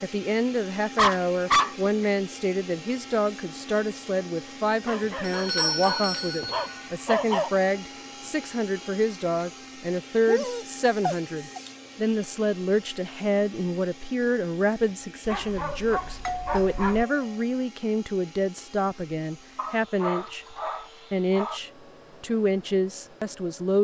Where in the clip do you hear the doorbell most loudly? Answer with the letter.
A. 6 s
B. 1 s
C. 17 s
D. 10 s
A.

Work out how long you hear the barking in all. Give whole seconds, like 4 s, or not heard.
9 s.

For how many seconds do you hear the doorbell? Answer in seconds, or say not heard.
3 s.